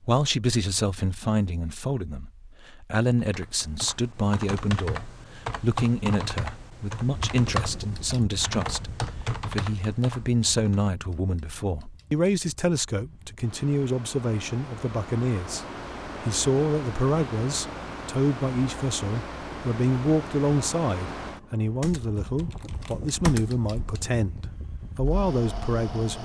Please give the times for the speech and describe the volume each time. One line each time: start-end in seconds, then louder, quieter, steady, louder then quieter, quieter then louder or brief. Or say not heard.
0.0-15.7 steady
16.2-26.2 steady.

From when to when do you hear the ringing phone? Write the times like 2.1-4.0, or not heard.
not heard.